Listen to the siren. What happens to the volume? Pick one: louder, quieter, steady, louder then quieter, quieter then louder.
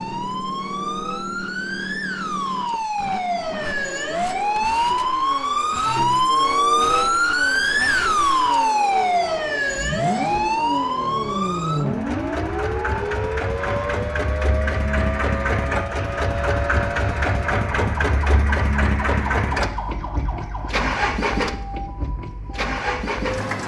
louder then quieter.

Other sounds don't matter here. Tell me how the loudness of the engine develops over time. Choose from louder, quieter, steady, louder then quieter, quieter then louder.
louder.